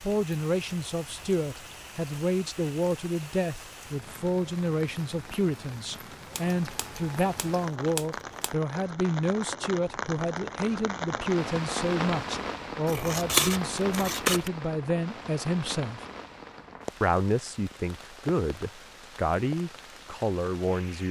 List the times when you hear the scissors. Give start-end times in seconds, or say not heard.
6.3-8.6, 12.8-14.5.